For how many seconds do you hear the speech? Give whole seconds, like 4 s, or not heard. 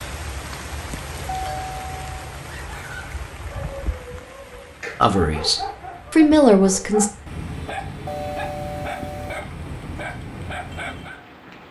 2 s.